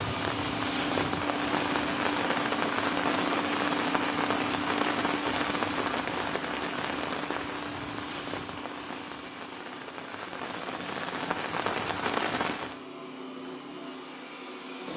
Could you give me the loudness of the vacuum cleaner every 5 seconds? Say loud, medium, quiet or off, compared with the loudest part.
loud, medium, medium.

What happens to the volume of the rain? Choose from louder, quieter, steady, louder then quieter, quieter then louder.
quieter then louder.